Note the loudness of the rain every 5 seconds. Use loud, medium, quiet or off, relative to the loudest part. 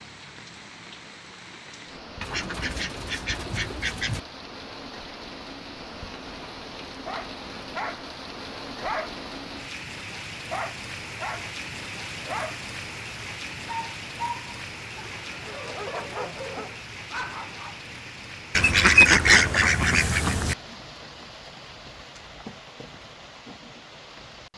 medium, loud, loud, loud, medium.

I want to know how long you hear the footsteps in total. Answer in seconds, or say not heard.
not heard.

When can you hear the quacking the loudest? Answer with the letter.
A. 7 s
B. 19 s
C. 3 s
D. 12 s
B.